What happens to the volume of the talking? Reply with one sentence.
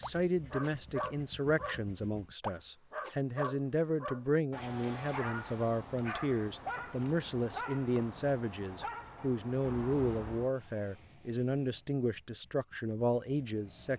The volume of the talking stays about the same.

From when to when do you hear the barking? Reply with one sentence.
The barking can be heard from 0.0 to 10.6 s.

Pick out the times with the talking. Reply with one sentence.
You can hear the talking from 0.0 to 13.9 s.